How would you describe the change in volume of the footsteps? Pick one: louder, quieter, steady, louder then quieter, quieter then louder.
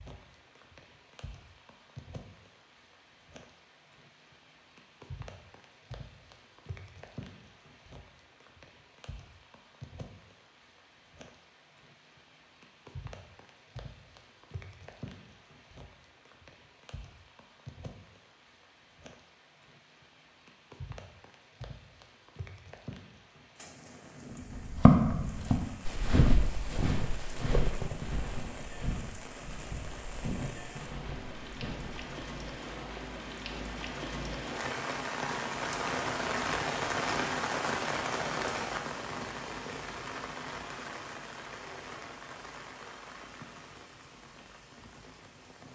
quieter.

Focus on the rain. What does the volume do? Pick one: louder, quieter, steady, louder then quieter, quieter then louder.
louder.